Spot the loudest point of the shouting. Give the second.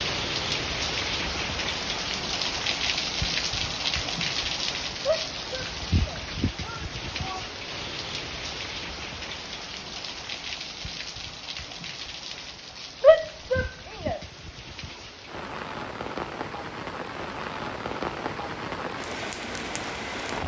13 s.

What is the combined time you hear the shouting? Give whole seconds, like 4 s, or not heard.
4 s.